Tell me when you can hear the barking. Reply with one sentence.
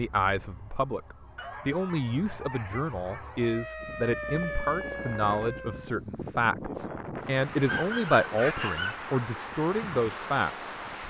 The barking can be heard from 1.4 to 3.4 s and from 7.7 to 9.0 s.